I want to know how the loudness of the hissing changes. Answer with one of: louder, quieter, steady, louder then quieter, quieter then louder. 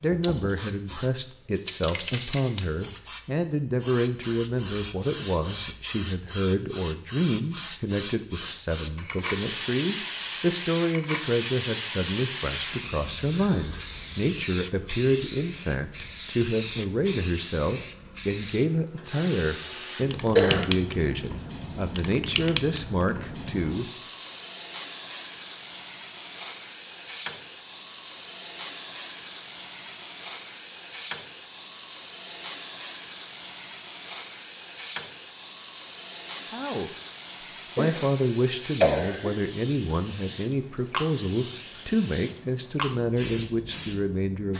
steady.